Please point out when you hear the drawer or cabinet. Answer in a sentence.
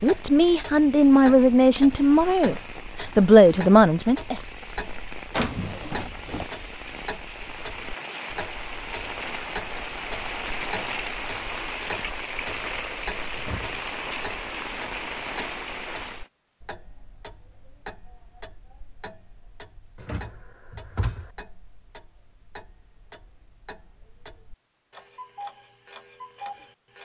You can hear the drawer or cabinet from 5.3 to 6.5 s, from 13.3 to 13.8 s and from 19.9 to 21.3 s.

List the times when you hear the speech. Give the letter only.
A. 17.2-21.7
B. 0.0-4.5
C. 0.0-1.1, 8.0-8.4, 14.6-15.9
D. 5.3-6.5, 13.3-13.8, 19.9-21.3
B.